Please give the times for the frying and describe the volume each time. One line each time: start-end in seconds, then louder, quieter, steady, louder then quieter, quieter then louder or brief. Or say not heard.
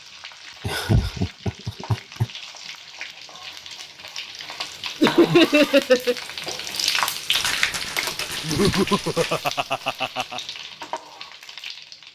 0.0-12.1 louder then quieter.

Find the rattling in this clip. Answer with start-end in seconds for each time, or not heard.
7.3-9.4.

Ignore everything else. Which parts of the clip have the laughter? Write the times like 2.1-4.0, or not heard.
0.7-2.2, 5.0-6.2, 8.4-10.4.